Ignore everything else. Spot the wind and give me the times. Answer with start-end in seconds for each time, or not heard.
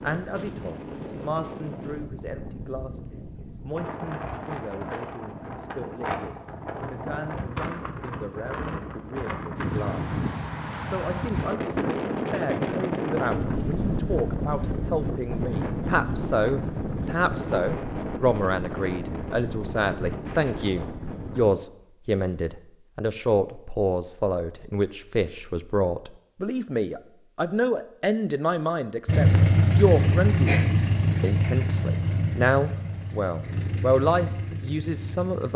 0.0-21.6.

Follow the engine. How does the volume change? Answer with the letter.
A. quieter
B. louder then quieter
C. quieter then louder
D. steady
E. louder
A.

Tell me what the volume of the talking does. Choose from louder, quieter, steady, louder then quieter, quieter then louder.
louder.